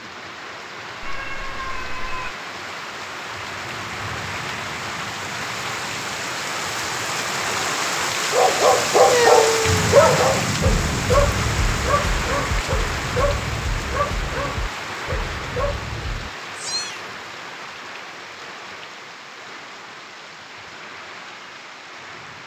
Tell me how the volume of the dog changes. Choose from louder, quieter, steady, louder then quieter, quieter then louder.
quieter.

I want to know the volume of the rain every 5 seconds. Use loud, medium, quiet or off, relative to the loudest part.
medium, loud, loud, medium, quiet.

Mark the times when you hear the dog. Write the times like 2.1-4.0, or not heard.
8.3-16.3.